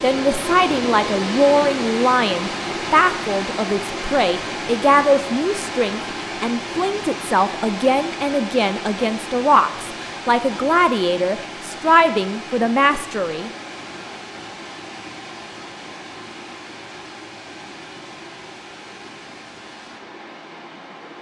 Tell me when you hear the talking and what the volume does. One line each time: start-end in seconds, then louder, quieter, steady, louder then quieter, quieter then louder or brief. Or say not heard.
0.0-13.5 steady.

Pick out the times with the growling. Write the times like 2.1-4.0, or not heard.
not heard.